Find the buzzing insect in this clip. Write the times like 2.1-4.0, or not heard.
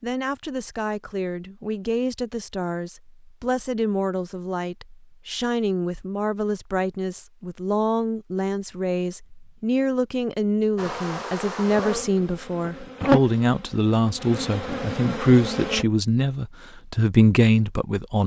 10.8-15.8.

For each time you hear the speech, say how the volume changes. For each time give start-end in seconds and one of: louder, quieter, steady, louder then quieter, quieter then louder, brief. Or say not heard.
0.0-18.2 louder.